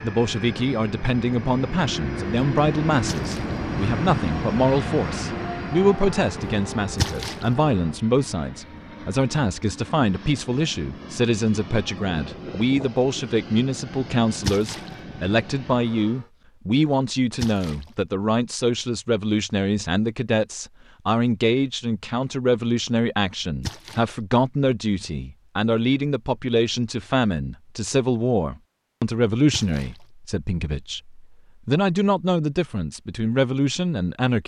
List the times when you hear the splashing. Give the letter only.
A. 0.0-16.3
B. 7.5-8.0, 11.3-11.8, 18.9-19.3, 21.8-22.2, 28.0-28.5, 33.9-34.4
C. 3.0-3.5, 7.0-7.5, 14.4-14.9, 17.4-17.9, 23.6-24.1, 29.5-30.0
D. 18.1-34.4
C.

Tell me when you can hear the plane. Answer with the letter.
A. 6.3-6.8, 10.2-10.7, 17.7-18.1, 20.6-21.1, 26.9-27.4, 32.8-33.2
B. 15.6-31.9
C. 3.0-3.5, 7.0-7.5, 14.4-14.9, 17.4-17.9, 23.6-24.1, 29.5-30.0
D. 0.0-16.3
D.